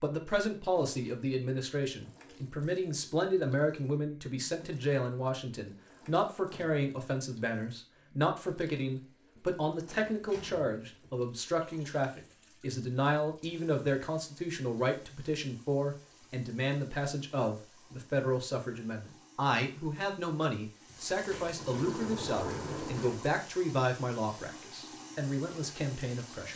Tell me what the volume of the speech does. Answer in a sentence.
The loudness of the speech stays about the same.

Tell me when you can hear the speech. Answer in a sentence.
The speech can be heard from 0.0 to 26.5 s.